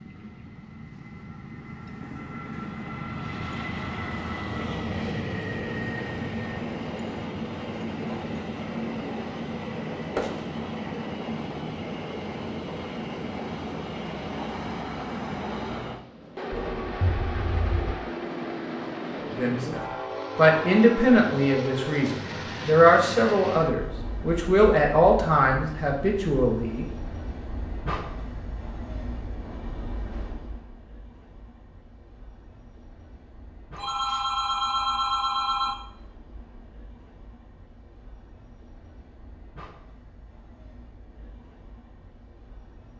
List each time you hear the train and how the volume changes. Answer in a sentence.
The train can be heard from 0.0 to 42.9 s, getting quieter.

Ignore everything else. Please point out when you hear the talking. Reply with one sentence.
The talking can be heard from 19.3 to 26.9 s.